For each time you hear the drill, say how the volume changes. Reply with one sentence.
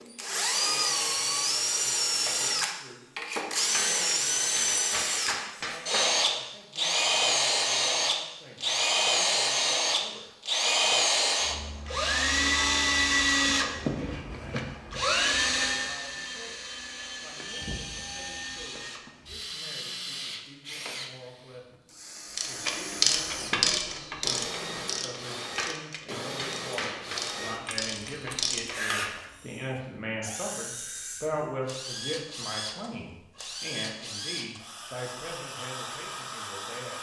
You can hear the drill from 0.0 to 36.9 s, getting quieter.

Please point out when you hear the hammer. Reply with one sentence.
The hammer can be heard from 3.7 to 6.0 s and from 25.6 to 27.2 s.